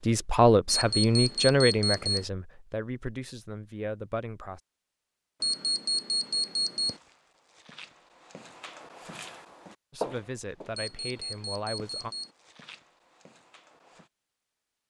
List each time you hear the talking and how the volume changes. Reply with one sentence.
The talking can be heard from 0.1 to 4.6 s, getting quieter; and briefly from 9.9 to 12.2 s.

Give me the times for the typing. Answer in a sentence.
The typing can't be heard in this clip.